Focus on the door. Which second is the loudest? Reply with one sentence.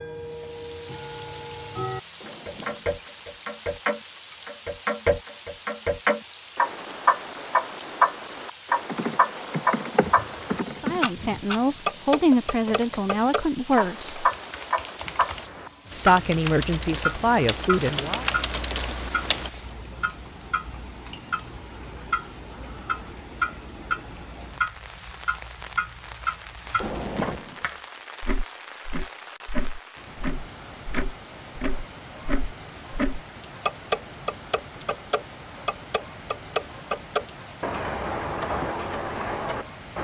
The volume of the door peaks at 27 seconds.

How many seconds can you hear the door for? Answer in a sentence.
You can hear the door for 2 seconds altogether.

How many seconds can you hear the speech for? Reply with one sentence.
You can hear the speech for 6 seconds altogether.